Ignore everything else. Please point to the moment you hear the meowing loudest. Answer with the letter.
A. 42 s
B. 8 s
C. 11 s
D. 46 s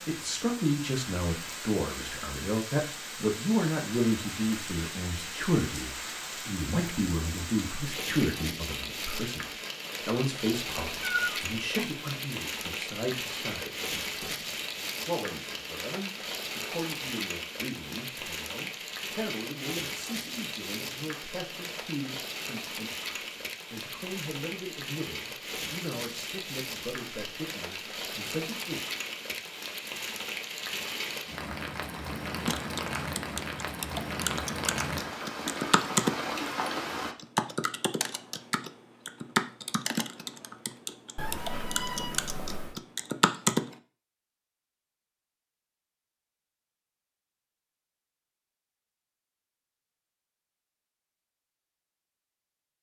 C.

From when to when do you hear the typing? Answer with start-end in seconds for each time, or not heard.
32.5-43.8.